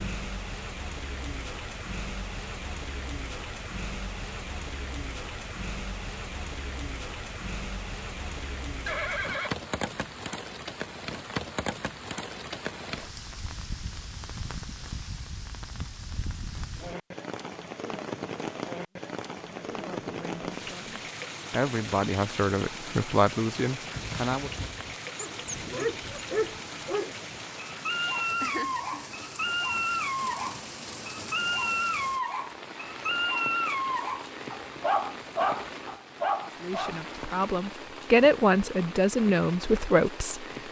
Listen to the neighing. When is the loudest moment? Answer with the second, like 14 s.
9 s.